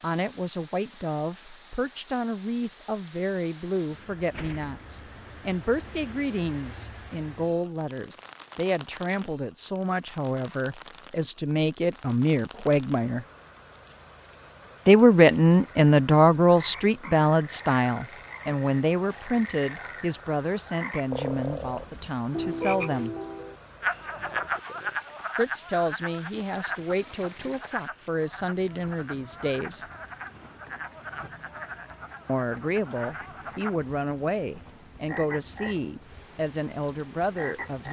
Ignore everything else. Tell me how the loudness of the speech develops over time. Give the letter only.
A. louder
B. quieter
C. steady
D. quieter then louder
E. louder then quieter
E.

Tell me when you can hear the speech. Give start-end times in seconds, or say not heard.
0.0-13.2, 14.8-23.1, 25.4-29.9, 32.2-37.8.